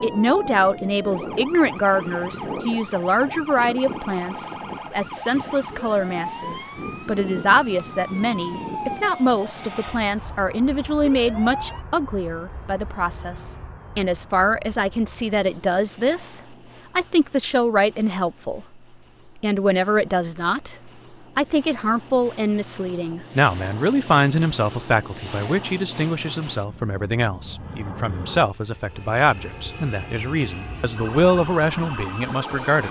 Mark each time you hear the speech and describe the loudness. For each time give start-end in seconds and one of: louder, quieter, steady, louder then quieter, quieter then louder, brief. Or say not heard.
0.0-32.8 steady.